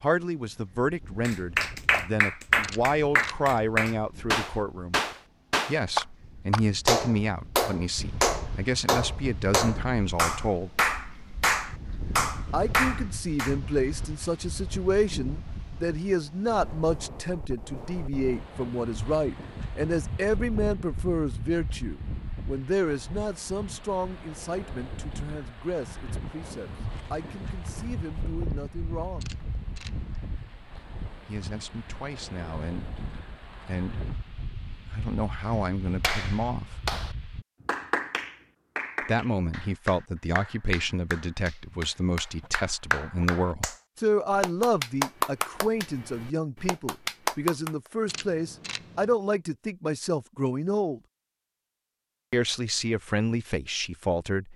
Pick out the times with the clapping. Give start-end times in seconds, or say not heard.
1.2-13.6, 36.0-47.7.